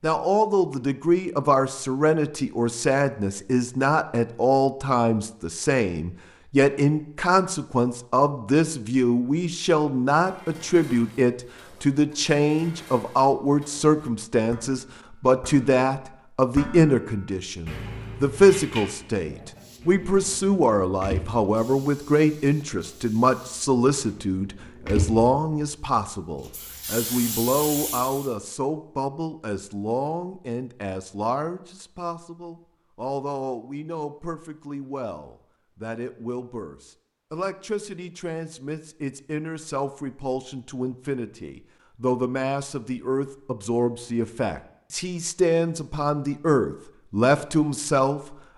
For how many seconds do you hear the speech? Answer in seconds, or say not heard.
48 s.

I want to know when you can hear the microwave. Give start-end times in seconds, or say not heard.
not heard.